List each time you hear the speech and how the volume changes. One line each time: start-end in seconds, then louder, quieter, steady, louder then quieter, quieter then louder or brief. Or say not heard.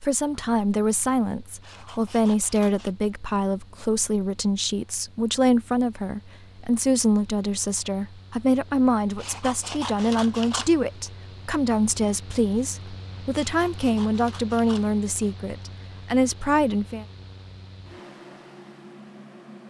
0.0-17.1 steady.